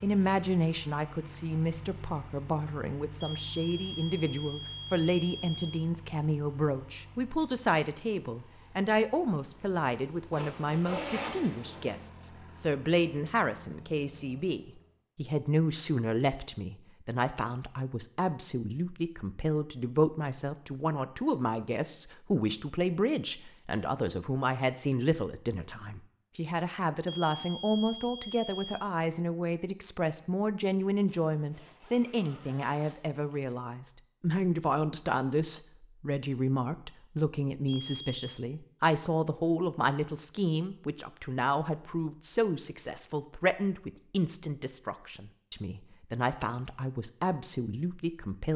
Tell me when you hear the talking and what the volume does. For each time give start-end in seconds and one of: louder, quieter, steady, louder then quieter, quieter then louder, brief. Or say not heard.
0.0-48.5 steady.